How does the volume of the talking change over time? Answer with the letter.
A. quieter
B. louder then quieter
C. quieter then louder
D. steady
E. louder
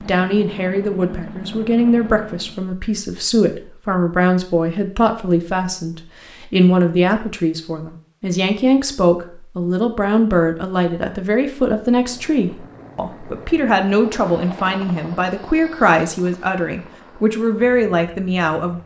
D.